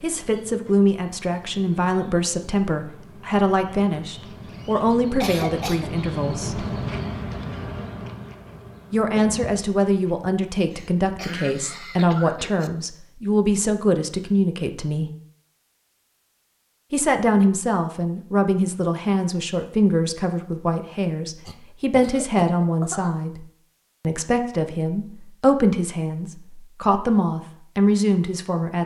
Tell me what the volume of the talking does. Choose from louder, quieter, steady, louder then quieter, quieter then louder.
steady.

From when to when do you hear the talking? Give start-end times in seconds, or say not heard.
0.0-6.7, 8.9-15.1, 16.9-28.8.